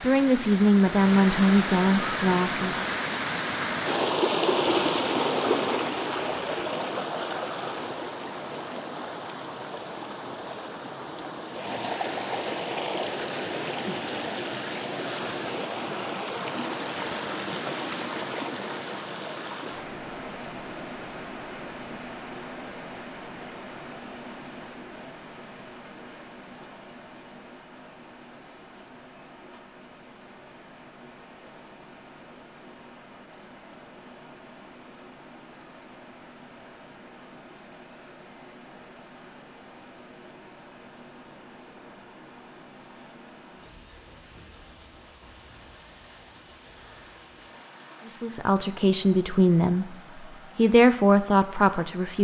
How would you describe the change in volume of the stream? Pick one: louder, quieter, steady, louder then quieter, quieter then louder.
quieter.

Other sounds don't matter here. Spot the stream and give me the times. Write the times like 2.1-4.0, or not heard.
0.0-52.1.